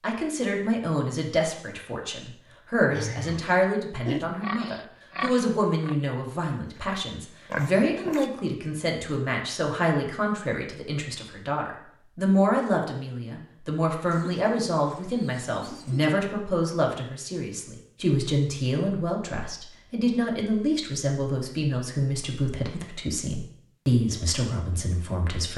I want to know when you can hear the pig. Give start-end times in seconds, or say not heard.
2.9-8.3.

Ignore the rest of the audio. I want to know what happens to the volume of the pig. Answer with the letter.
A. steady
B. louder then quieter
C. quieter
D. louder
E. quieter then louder
E.